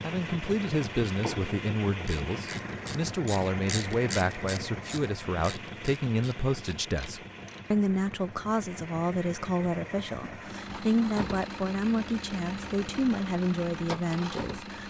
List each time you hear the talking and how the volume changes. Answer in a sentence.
The talking can be heard from 0.0 to 14.8 s, at a steady volume.